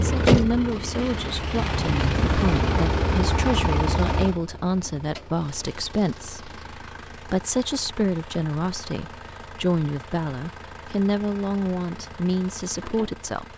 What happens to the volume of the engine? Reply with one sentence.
The loudness of the engine goes down.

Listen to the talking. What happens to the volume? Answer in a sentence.
The loudness of the talking stays about the same.